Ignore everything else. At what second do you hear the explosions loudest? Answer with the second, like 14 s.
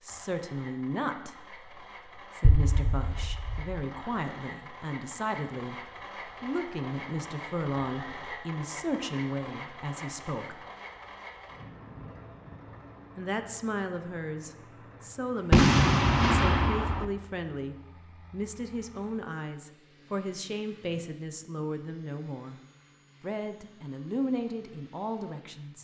16 s.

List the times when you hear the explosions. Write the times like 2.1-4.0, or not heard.
2.4-3.6, 15.5-17.1.